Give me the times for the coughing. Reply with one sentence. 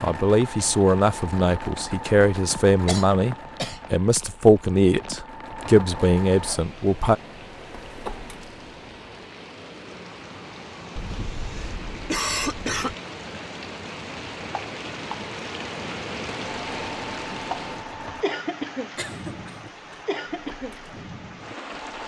You can hear the coughing from 2.9 to 3.8 s, from 10.9 to 12.9 s and from 18.9 to 20.1 s.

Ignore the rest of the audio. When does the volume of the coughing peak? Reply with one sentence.
The volume of the coughing peaks at 12 seconds.